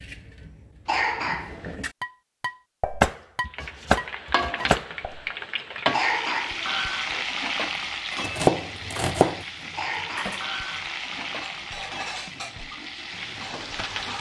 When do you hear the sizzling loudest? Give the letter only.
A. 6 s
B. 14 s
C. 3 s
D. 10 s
A.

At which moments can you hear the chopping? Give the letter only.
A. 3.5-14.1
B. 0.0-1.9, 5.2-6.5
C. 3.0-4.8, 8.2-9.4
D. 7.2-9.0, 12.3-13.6
C.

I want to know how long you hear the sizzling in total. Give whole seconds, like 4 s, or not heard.
11 s.